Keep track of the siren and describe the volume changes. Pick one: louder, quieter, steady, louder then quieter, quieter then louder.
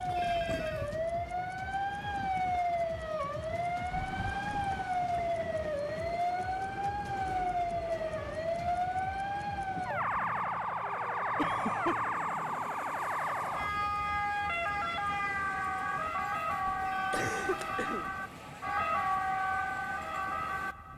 steady.